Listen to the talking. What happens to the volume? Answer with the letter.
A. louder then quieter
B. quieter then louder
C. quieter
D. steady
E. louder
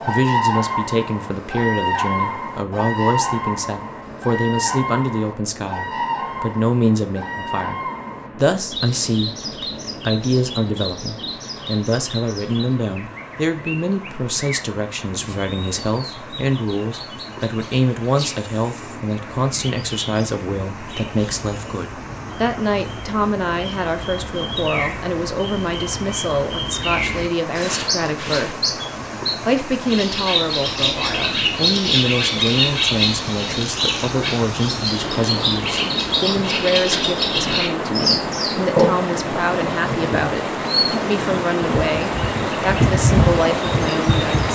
D.